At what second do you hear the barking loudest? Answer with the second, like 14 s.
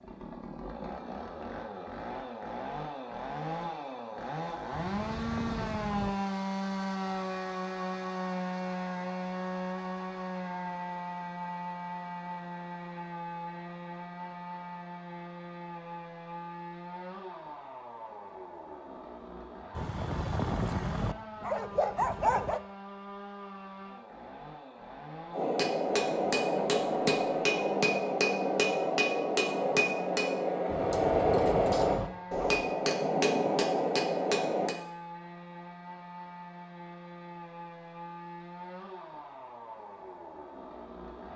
22 s.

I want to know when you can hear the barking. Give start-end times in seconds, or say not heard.
4.7-6.2, 19.8-22.6, 30.6-32.4.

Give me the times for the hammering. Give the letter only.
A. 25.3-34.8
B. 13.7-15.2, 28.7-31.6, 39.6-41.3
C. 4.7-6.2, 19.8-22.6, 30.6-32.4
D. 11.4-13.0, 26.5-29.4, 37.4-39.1
A.